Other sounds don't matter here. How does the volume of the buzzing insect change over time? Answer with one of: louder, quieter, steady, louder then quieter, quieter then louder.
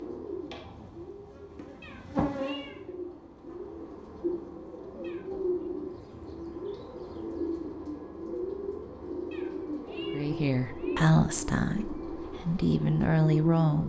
louder then quieter.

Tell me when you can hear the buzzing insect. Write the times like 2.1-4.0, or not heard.
0.1-7.5.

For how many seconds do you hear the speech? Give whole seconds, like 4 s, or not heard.
4 s.